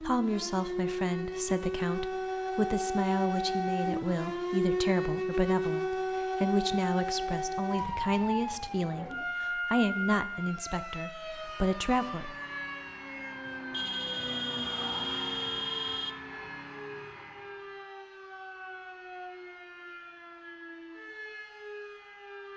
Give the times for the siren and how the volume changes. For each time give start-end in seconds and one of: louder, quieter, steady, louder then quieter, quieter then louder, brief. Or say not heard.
0.0-22.5 quieter.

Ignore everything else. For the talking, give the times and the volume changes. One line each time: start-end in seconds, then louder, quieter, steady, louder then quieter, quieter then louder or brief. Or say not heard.
0.0-12.3 steady.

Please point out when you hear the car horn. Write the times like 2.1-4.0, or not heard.
13.7-16.1.